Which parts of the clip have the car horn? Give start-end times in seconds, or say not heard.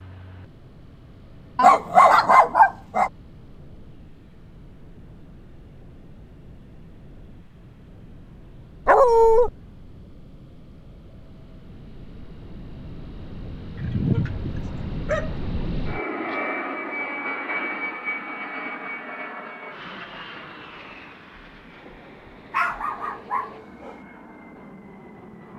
not heard.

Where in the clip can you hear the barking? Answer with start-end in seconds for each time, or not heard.
1.6-3.1, 8.8-9.5, 13.8-15.3, 22.5-23.9.